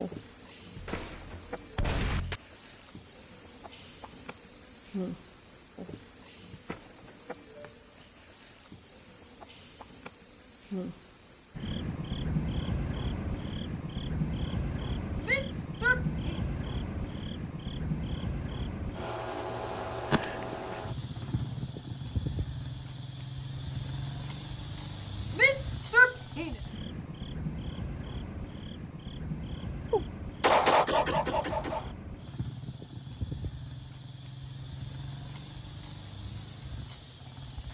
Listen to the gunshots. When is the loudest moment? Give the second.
31 s.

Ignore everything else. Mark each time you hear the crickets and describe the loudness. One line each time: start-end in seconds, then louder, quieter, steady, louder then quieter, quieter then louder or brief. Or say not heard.
0.0-37.6 quieter.